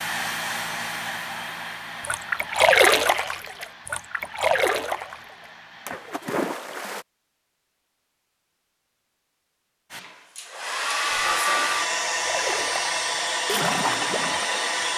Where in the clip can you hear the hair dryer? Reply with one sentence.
You can hear the hair dryer from 0.0 to 6.3 s and from 9.9 to 14.9 s.